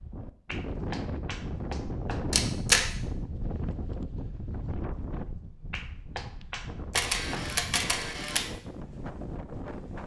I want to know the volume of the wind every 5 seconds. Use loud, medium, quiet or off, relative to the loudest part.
loud, medium.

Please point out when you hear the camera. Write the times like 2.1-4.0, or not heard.
2.3-2.9, 6.9-8.4.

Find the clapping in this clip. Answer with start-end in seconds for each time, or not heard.
0.5-2.2, 5.7-7.5.